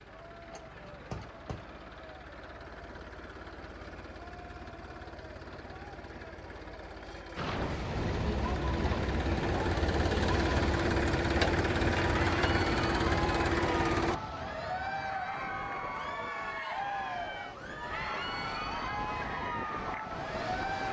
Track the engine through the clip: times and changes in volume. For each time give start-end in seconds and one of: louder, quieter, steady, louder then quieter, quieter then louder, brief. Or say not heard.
0.0-14.2 louder.